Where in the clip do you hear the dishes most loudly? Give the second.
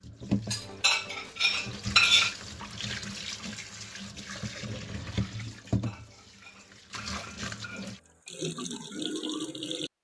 2 s.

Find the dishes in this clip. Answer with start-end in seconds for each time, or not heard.
0.5-2.4, 5.7-8.3.